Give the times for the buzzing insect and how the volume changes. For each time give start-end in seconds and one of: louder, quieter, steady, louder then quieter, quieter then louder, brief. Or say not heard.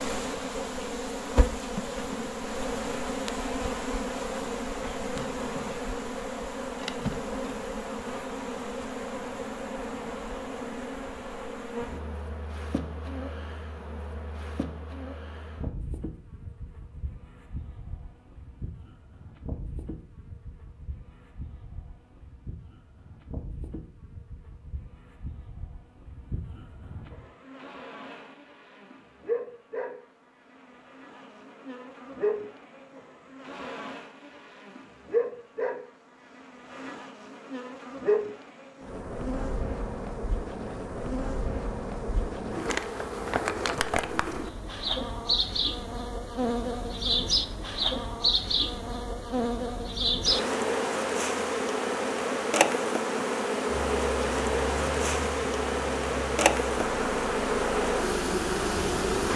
0.0-59.3 quieter then louder.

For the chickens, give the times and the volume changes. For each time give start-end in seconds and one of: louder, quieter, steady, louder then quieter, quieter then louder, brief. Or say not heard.
not heard.